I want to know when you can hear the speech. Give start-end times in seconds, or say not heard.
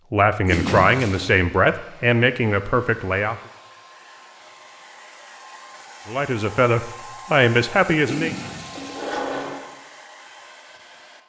0.1-3.4, 6.0-8.3.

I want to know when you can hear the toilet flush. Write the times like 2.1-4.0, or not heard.
0.4-1.4, 8.0-9.7.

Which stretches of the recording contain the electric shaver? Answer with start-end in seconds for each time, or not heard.
not heard.